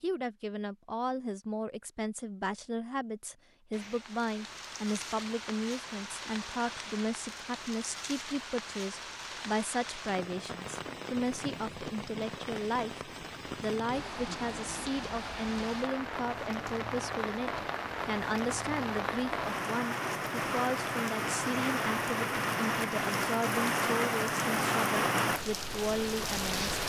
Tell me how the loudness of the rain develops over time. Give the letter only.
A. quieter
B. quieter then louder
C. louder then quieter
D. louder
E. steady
D.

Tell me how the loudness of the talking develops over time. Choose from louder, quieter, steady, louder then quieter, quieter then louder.
steady.